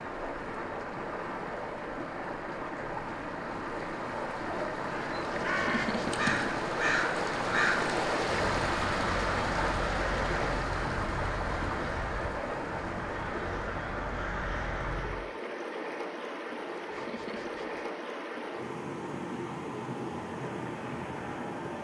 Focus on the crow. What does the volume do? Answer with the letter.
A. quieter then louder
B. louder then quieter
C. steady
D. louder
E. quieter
E.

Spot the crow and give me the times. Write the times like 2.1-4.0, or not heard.
5.1-15.2.